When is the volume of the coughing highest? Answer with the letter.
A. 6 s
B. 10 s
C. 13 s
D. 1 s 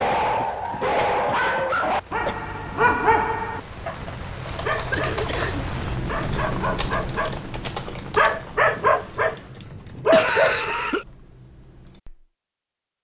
B.